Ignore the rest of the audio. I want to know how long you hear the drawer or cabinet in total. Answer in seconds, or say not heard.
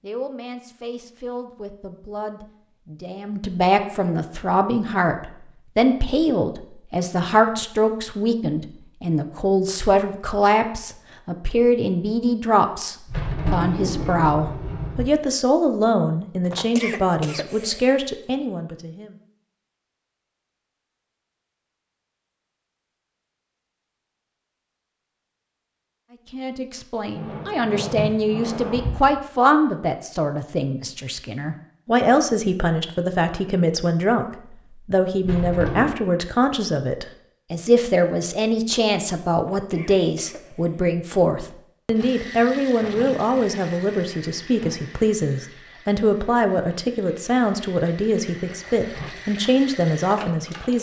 5 s.